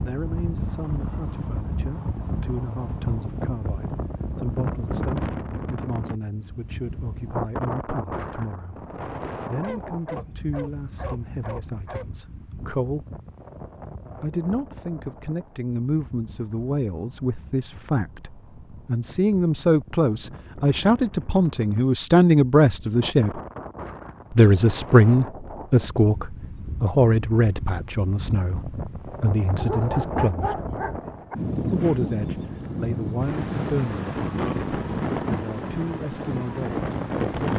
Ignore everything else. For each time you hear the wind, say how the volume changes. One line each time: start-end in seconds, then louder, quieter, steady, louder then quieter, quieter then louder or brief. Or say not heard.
0.0-37.5 quieter then louder.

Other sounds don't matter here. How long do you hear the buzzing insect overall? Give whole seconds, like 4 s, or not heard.
not heard.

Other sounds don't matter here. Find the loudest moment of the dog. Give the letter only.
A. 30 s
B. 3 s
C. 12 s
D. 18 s
A.